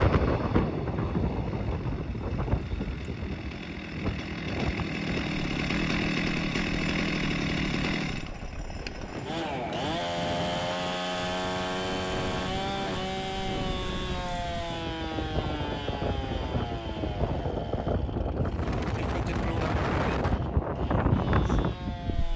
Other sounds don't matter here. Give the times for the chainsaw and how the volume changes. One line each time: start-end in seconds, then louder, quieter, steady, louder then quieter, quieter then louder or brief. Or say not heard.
0.0-22.3 louder then quieter.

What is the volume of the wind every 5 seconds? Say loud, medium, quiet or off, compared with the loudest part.
loud, medium, medium, loud, loud.